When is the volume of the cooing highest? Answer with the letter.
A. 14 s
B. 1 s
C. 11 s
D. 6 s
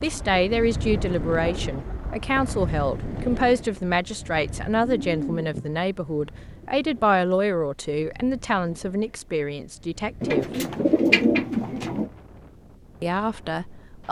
C.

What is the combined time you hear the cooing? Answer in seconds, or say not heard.
7 s.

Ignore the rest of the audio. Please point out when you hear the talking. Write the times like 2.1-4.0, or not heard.
0.0-10.4, 13.0-14.0.